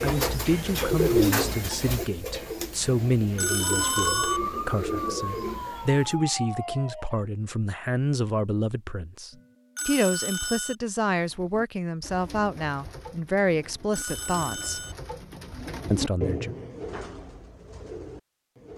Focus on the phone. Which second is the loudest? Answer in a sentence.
The volume of the phone peaks at 4 seconds.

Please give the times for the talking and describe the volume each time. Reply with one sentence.
The talking can be heard from 0.0 to 14.8 s, at a steady volume; and briefly from 15.9 to 16.6 s.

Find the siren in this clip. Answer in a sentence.
The siren can be heard from 3.6 to 7.2 s.